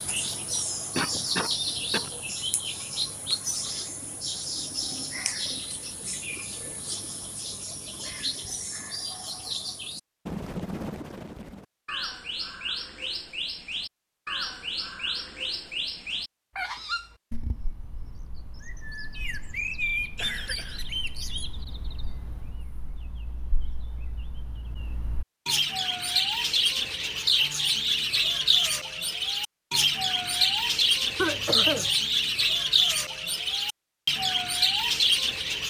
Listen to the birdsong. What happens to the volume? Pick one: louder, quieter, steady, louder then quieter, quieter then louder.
louder.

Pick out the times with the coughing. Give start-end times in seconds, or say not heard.
0.9-2.1, 19.9-20.9, 31.1-31.9.